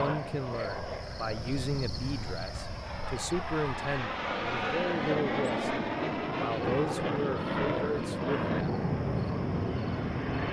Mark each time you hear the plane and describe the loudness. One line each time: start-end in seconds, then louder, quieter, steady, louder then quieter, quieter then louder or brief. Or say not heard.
0.0-10.4 louder.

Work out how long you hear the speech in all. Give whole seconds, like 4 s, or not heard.
8 s.